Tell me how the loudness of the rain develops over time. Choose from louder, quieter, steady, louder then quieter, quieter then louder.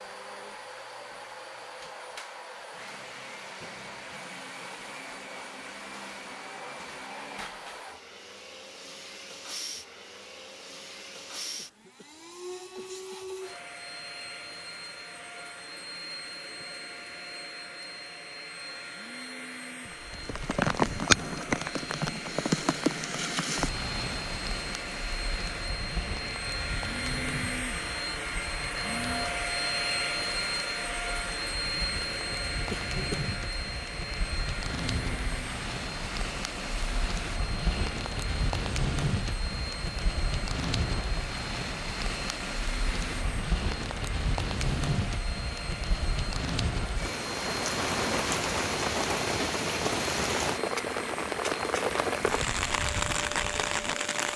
quieter then louder.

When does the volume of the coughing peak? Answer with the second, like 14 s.
33 s.